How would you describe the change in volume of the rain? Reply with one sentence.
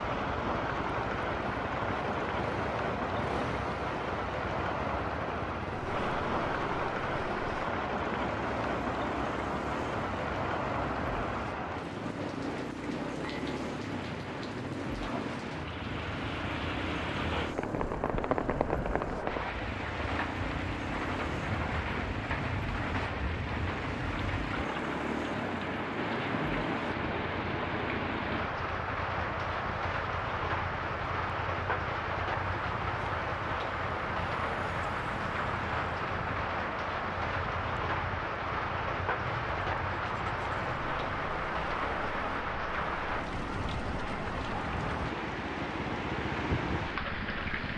The volume of the rain stays about the same.